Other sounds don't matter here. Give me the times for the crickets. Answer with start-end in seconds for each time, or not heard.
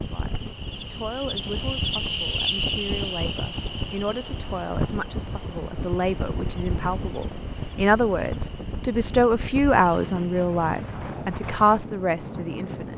0.0-10.5.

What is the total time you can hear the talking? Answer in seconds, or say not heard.
13 s.